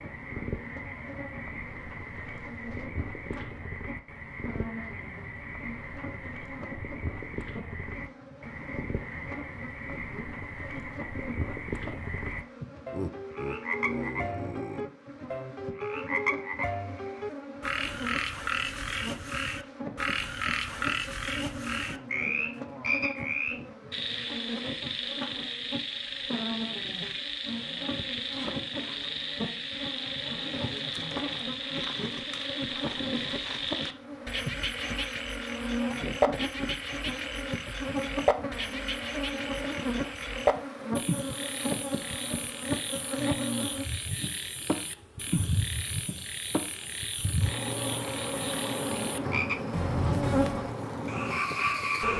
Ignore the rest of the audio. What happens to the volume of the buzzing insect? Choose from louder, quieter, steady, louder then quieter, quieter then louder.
louder.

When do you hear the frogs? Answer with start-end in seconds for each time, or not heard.
0.0-52.1.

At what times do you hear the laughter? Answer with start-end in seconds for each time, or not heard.
12.9-14.8.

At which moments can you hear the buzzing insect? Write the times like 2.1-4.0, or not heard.
0.0-52.1.